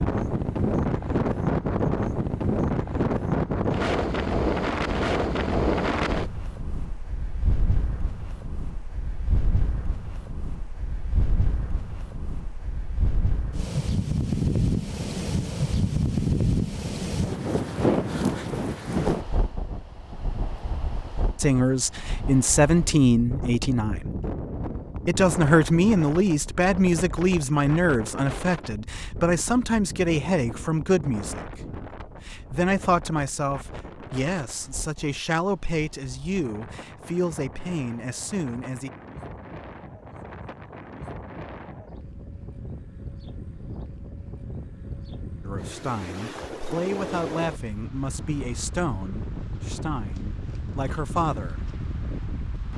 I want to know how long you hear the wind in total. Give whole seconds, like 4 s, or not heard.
53 s.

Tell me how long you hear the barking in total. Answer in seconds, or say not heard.
not heard.